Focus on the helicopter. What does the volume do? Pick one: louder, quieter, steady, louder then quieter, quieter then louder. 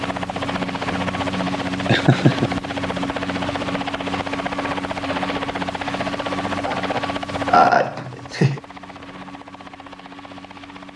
quieter.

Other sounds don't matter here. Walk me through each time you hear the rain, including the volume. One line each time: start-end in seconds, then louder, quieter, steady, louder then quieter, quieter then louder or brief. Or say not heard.
not heard.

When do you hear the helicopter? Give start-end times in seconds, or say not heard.
0.0-10.9.